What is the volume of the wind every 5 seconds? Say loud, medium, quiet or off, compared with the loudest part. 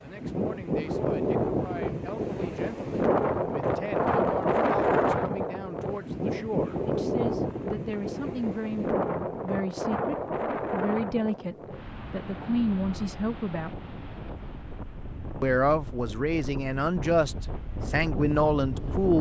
loud, loud, medium, medium.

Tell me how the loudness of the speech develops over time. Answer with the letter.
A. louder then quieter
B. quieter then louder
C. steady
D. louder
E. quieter
D.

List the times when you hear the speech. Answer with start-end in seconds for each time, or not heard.
0.0-13.7, 15.4-19.1.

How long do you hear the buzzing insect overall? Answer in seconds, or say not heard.
not heard.